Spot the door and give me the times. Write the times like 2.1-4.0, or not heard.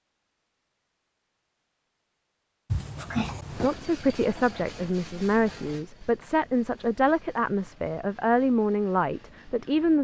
2.7-3.7.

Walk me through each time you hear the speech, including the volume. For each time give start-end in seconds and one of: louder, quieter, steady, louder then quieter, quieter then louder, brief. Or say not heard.
3.6-9.9 steady.